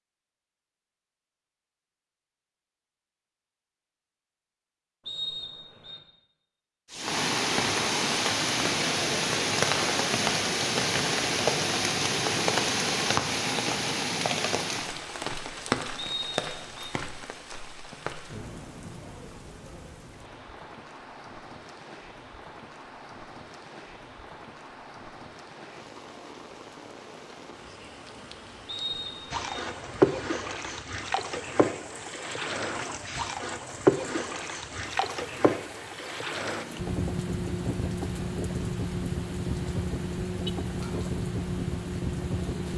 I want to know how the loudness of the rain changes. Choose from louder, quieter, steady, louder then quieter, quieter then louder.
quieter.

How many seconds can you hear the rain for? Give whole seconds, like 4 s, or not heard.
36 s.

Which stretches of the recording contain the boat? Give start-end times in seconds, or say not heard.
29.3-42.7.